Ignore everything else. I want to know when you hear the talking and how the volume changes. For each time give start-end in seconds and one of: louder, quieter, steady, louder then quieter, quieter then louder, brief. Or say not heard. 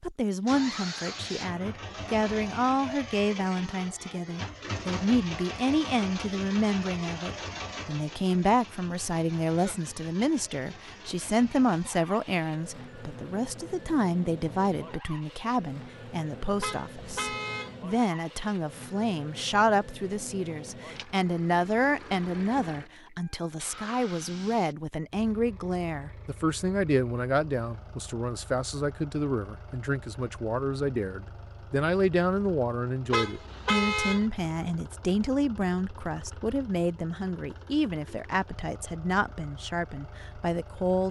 0.0-41.0 steady.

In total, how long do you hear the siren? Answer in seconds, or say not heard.
not heard.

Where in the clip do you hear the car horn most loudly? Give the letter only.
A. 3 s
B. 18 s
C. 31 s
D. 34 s
D.